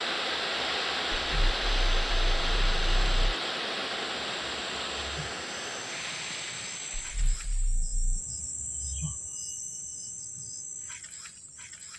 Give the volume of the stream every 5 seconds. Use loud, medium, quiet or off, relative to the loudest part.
loud, medium, off.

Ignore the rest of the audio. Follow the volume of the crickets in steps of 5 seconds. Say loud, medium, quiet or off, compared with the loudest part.
medium, loud, loud.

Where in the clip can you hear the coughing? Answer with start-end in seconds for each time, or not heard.
not heard.